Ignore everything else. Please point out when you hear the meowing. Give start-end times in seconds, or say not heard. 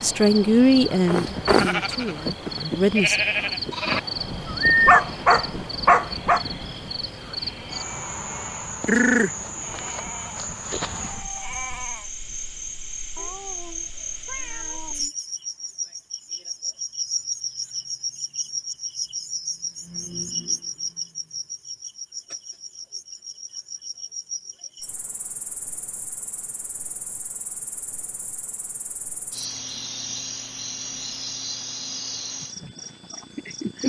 13.2-15.2.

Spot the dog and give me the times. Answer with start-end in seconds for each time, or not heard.
4.8-6.4.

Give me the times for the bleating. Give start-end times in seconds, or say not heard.
1.1-12.0.